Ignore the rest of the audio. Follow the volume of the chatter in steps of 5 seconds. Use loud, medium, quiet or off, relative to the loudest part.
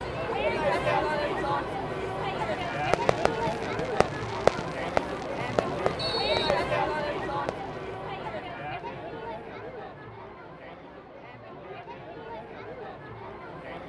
loud, loud, quiet.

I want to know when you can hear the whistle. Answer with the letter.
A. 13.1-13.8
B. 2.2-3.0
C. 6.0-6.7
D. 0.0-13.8
C.